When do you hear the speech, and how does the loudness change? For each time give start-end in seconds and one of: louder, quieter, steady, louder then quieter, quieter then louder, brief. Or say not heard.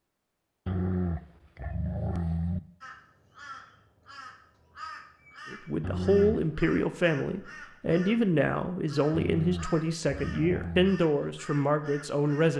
5.5-12.5 steady.